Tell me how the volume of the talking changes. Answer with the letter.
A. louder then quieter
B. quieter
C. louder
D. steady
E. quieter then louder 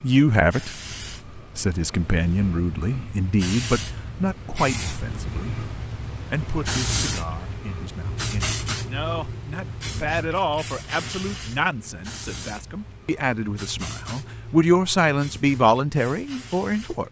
E.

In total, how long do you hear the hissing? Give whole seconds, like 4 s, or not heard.
17 s.